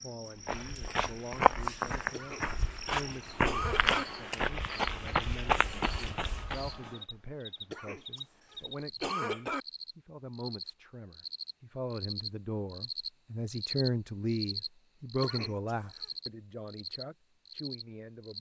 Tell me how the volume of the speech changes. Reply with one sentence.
The loudness of the speech goes up.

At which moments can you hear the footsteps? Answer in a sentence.
You can hear the footsteps from 0.5 to 6.9 s.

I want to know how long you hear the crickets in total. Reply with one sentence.
The crickets can be heard for 18 seconds in total.